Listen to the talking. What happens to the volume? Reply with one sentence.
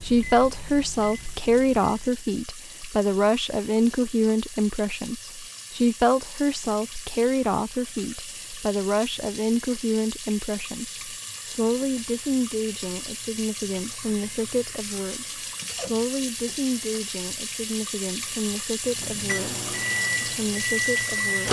The volume of the talking goes down.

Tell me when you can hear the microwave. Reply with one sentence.
You can hear the microwave from 0.0 to 2.4 s and from 18.9 to 21.4 s.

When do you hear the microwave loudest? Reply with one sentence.
The loudest moment of the microwave is at 21 seconds.